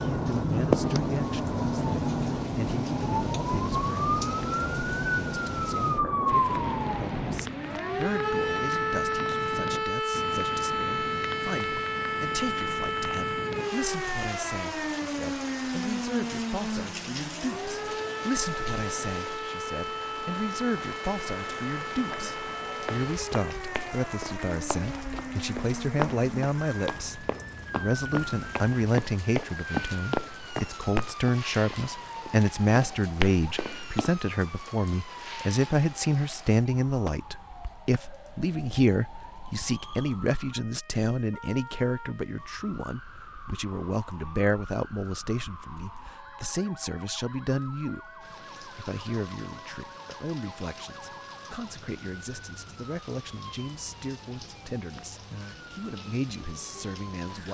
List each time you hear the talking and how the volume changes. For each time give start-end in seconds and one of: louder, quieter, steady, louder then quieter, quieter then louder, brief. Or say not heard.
0.0-57.5 louder then quieter.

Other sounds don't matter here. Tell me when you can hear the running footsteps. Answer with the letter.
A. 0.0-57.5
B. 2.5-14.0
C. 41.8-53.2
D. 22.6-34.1
D.